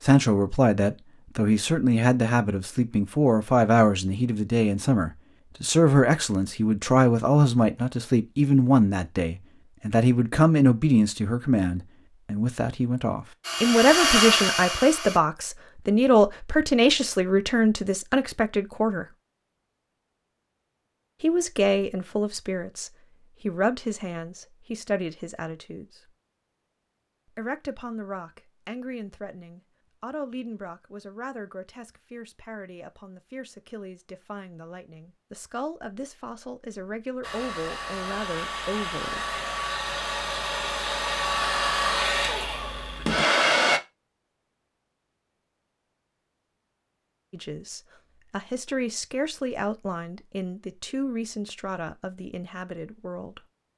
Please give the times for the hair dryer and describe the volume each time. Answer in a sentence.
You can hear the hair dryer briefly from 13.4 to 15.2 s; and from 37.2 to 43.8 s, getting louder.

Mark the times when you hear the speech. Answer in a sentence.
The speech can be heard from 0.0 to 19.1 s, from 21.2 to 26.1 s, from 27.4 to 39.4 s and from 47.3 to 53.4 s.